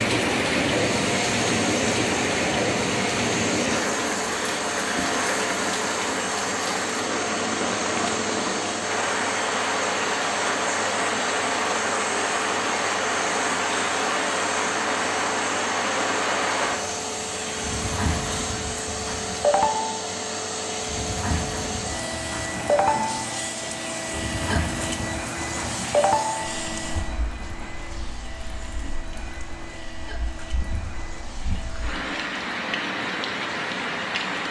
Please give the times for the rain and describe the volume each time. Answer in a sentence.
You can hear the rain from 0.0 to 34.4 s, getting quieter.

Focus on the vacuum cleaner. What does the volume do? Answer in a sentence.
The loudness of the vacuum cleaner goes down.